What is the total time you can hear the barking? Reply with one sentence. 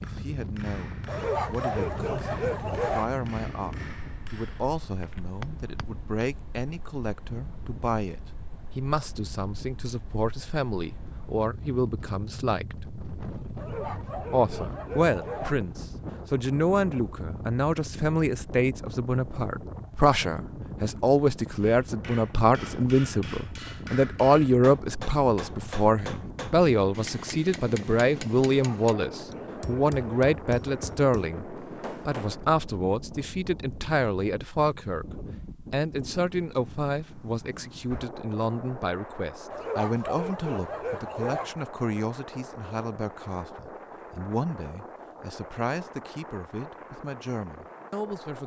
The barking can be heard for 8 seconds in total.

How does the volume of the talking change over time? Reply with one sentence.
The loudness of the talking goes up, then down.